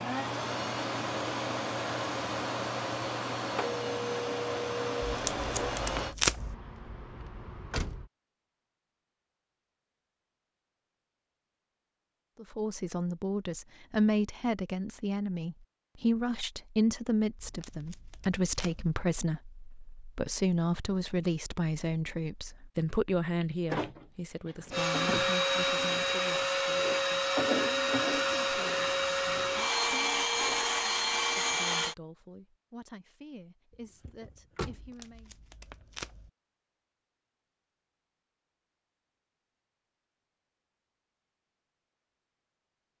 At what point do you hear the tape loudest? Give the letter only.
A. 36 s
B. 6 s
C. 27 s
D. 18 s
B.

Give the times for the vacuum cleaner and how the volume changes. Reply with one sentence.
You can hear the vacuum cleaner from 0.0 to 6.2 s, at a steady volume; and from 24.7 to 31.9 s, at a steady volume.